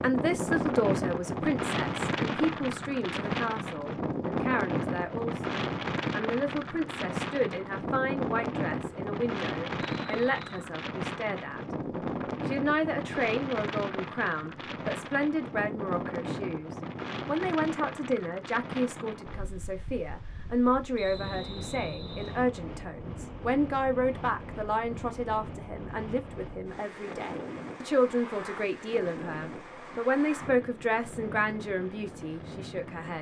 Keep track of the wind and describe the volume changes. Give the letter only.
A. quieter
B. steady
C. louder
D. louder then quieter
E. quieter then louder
A.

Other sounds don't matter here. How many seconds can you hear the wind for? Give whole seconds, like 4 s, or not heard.
33 s.